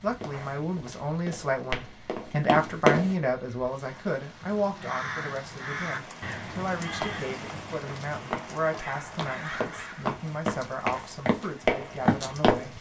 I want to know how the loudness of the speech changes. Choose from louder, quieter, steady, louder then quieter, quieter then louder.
quieter.